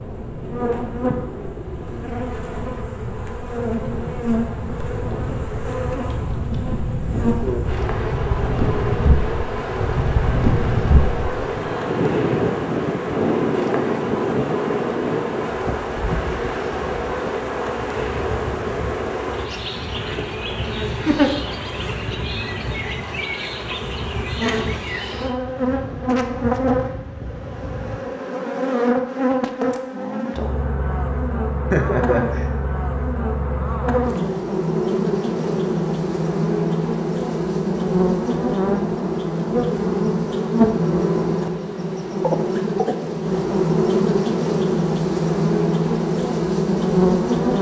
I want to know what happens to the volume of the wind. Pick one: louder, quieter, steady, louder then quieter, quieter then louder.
louder then quieter.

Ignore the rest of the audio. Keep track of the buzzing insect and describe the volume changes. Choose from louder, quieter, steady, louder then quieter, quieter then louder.
louder.